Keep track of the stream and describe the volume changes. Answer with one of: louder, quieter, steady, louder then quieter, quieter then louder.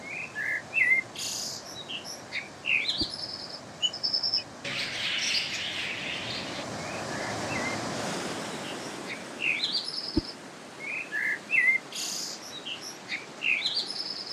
louder then quieter.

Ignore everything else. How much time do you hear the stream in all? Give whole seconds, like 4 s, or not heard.
14 s.